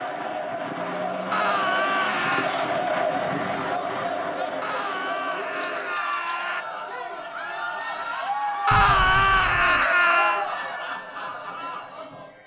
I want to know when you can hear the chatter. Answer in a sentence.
You can hear the chatter from 0.0 to 12.4 s.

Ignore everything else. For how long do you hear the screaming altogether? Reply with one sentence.
You can hear the screaming for 5 seconds altogether.